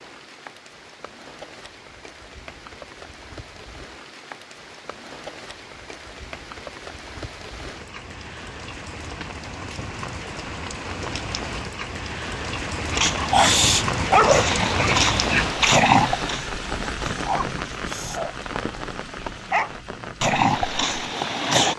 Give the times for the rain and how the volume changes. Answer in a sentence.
The rain can be heard from 0.0 to 21.7 s, getting louder then quieter.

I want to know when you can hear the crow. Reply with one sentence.
You can't hear the crow here.